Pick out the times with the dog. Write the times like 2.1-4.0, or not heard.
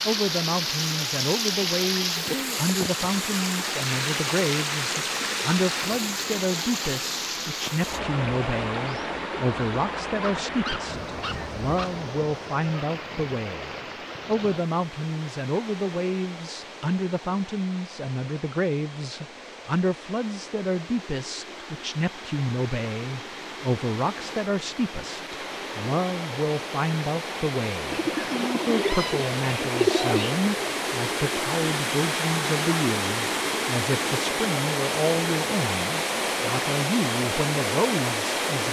10.2-11.9.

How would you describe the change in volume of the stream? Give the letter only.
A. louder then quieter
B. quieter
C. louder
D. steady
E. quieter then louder
E.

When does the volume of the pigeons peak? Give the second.
30 s.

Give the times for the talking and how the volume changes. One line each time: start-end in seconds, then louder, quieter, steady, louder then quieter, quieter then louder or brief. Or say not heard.
0.1-38.6 steady.